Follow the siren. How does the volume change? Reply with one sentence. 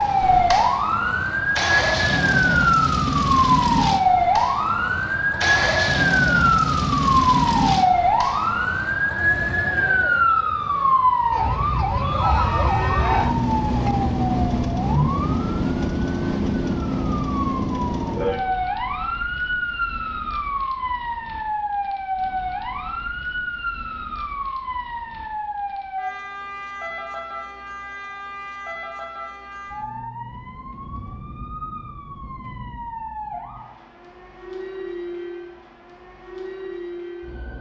The volume of the siren goes down.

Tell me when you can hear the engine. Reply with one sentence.
The engine can be heard from 0.0 to 8.7 s.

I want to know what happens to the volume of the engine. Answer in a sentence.
The loudness of the engine stays about the same.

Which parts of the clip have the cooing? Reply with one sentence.
The cooing can't be heard in this clip.